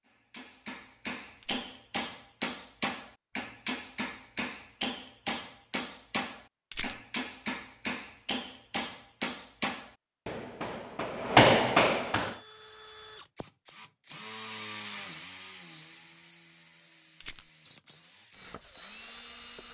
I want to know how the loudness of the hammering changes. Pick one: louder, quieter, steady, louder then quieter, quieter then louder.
louder.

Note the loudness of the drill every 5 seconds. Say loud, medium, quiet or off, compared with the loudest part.
off, off, loud, loud.